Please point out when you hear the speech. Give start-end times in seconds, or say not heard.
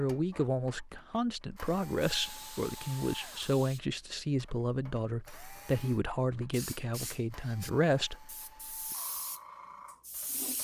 0.0-8.8.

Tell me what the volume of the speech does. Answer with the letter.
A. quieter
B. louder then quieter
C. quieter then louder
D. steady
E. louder
D.